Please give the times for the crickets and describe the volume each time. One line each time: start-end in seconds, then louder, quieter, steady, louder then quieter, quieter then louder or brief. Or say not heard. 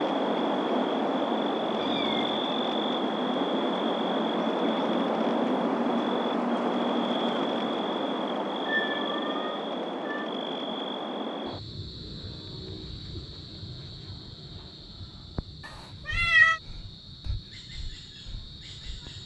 0.0-19.2 quieter.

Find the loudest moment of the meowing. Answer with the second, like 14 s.
16 s.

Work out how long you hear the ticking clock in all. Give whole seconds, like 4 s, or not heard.
not heard.